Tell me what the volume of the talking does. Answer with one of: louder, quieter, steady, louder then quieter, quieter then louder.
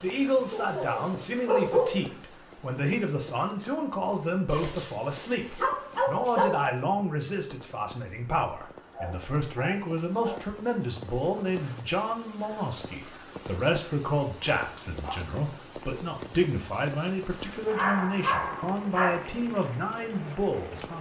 steady.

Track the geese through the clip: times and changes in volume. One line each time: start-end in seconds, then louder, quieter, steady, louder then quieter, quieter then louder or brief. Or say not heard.
not heard.